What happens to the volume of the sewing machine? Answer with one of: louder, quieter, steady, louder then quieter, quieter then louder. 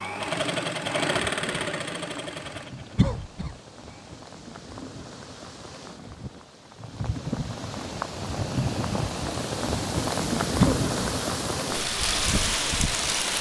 quieter.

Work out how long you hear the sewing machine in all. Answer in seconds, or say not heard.
4 s.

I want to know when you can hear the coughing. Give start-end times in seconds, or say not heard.
3.0-3.5, 10.6-11.2.